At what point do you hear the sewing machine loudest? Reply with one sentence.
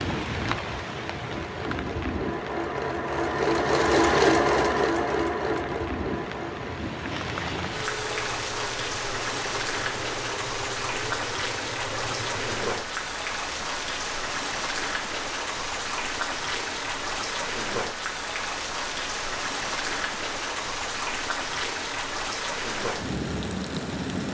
The loudest moment of the sewing machine is at 4 seconds.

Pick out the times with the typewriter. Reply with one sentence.
The typewriter can't be heard in this clip.